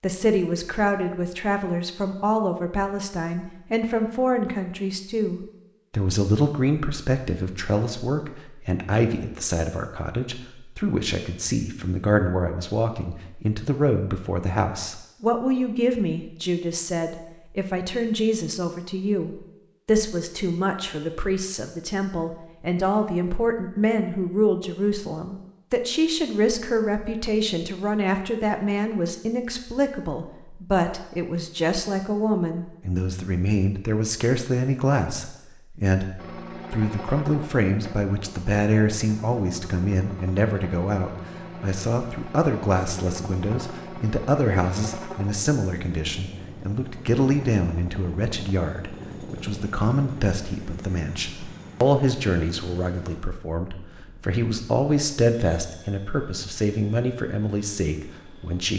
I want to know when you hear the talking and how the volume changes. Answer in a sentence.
The talking can be heard from 0.0 to 58.7 s, at a steady volume.